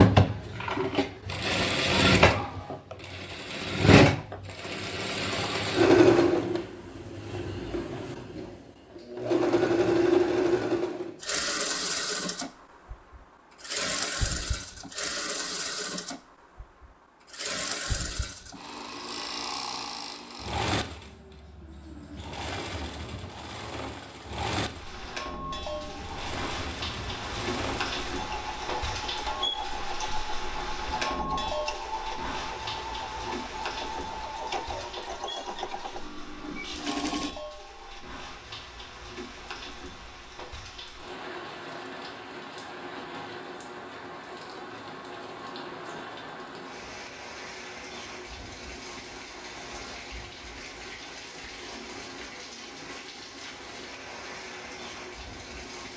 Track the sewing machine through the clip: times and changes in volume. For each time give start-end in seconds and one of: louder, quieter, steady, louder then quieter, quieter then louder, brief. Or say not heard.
0.0-37.4 quieter.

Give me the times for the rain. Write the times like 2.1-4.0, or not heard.
24.6-55.9.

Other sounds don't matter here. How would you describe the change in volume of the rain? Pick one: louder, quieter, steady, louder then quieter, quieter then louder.
quieter.